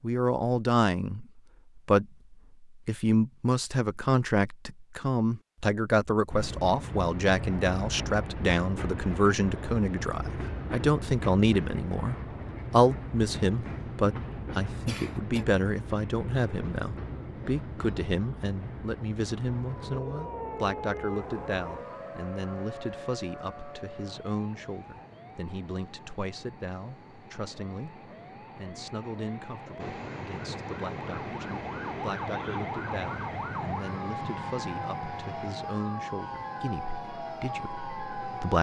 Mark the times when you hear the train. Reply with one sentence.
You can hear the train from 6.3 to 38.5 s.